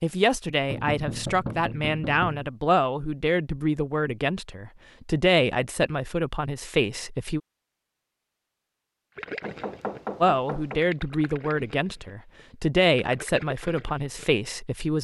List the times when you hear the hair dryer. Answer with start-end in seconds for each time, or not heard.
not heard.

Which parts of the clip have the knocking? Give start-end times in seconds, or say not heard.
0.7-2.5, 9.4-10.8.